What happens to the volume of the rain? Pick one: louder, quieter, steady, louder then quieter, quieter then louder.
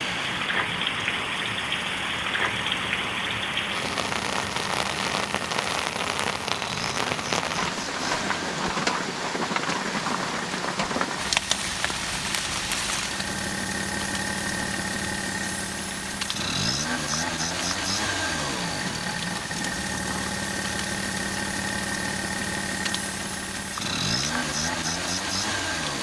quieter.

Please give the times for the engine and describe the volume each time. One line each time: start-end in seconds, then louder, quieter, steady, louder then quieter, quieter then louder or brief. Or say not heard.
0.0-25.9 louder.